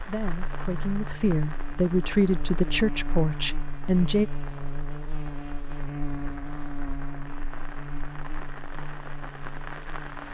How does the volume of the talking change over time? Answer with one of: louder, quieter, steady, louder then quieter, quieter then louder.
louder then quieter.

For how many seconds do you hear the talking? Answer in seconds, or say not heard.
4 s.